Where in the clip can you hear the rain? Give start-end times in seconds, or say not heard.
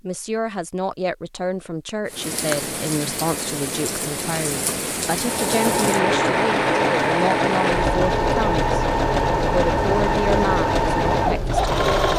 2.0-12.1.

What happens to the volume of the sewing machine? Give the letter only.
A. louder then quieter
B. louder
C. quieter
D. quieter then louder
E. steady
E.